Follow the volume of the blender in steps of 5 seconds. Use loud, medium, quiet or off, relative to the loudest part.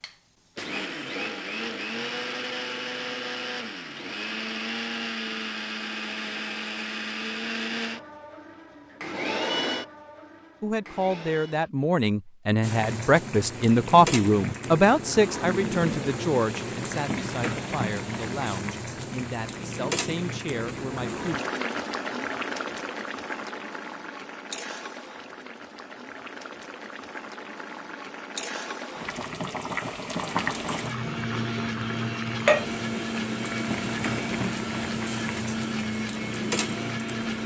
loud, loud, quiet, off, off, off, loud, loud.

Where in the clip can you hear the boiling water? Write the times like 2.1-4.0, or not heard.
12.6-37.4.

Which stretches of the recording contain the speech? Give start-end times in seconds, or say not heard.
10.6-21.4.